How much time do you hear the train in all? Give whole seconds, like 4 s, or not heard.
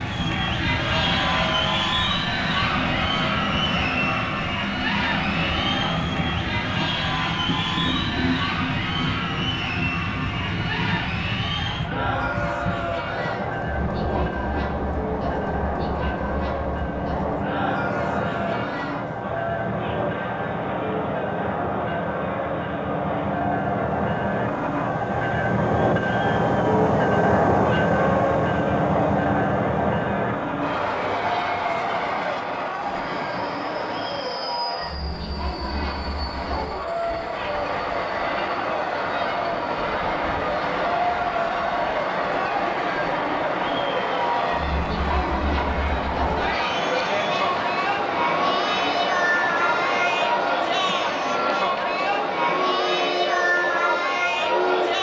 55 s.